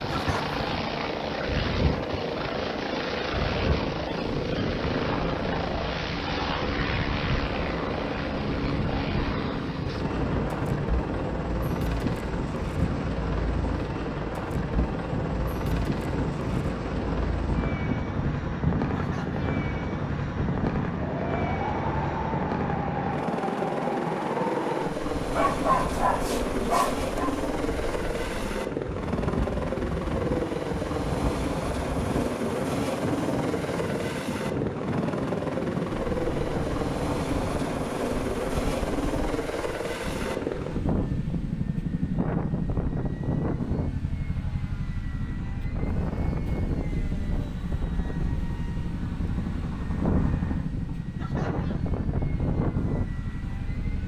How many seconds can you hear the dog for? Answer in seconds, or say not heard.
2 s.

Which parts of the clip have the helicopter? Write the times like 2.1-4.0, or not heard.
0.0-54.0.